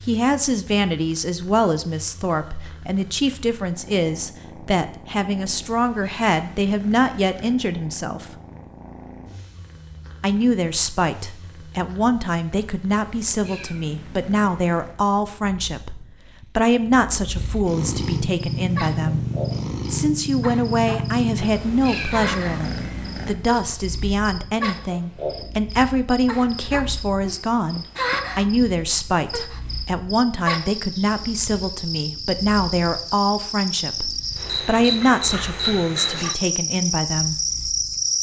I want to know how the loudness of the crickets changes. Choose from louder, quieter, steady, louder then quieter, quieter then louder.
louder.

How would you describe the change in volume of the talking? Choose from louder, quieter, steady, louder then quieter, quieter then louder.
steady.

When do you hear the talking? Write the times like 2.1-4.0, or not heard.
0.1-8.3, 10.2-19.2, 19.9-37.4.